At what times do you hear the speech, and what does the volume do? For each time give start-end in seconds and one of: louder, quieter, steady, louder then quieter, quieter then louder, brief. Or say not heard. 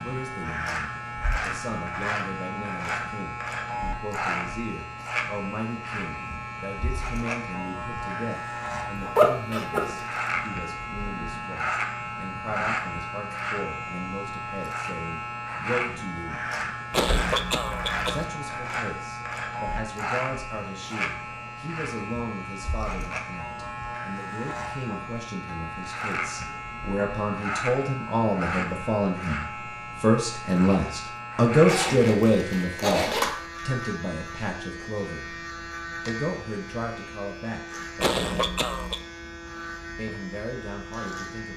0.0-16.4 steady
18.1-35.4 louder
36.0-38.6 brief
40.0-41.5 brief.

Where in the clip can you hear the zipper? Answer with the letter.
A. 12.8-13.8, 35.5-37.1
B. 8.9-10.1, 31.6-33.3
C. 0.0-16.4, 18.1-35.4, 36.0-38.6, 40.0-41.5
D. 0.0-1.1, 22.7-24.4
B.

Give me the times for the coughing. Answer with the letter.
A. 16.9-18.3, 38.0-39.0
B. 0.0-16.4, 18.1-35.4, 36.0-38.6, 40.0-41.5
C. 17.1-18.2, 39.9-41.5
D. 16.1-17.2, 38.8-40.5
A.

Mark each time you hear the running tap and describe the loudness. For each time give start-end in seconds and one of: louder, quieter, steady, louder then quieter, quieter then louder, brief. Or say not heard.
not heard.